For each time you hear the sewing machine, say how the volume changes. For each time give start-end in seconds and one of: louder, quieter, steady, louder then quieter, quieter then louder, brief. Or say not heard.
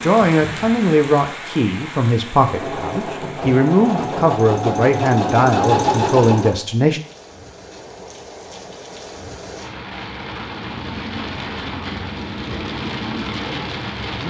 2.4-6.6 louder.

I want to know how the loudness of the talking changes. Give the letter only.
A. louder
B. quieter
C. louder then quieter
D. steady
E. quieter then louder
D.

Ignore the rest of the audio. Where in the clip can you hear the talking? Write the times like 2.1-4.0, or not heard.
0.0-7.0.